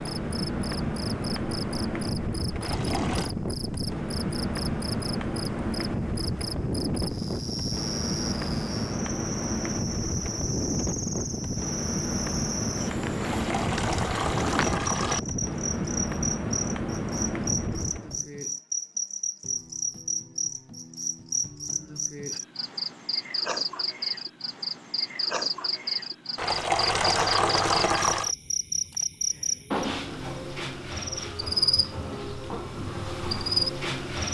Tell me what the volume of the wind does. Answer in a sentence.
The loudness of the wind stays about the same.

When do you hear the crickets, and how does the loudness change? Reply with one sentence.
The crickets can be heard from 0.0 to 34.2 s, getting louder.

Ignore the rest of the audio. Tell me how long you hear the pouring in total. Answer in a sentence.
The pouring can be heard for 5 seconds in total.